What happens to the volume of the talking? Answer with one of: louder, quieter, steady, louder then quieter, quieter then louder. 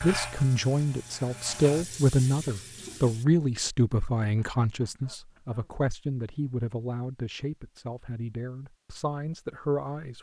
quieter.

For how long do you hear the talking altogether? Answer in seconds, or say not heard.
10 s.